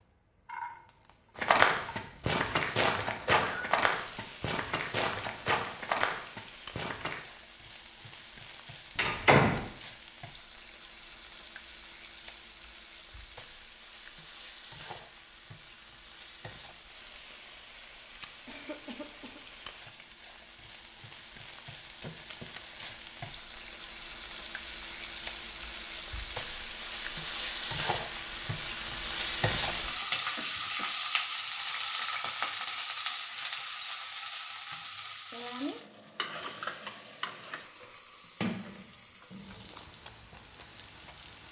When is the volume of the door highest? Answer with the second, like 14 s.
9 s.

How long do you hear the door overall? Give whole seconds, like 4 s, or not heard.
2 s.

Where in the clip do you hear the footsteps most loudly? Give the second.
2 s.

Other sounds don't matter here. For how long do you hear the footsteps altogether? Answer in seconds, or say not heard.
6 s.